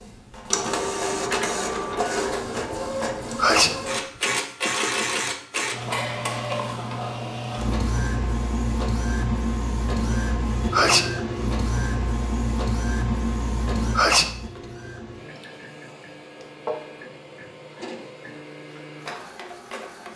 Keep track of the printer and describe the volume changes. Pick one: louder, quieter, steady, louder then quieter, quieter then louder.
quieter.